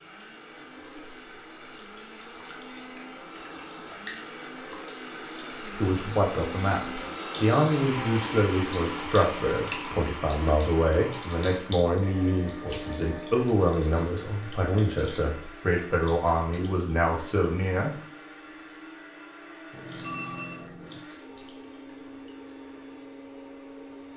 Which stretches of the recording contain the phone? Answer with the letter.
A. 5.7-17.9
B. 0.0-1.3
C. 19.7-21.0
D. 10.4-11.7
C.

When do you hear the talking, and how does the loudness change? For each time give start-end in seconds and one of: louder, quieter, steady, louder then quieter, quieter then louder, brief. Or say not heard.
5.7-17.9 steady.